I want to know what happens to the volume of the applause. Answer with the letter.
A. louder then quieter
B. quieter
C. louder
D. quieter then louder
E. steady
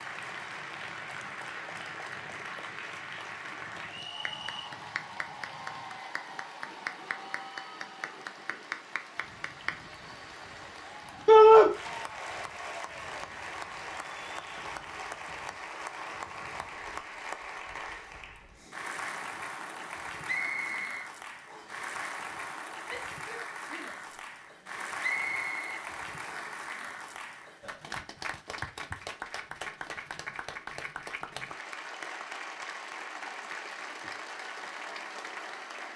E.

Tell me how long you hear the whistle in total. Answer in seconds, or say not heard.
4 s.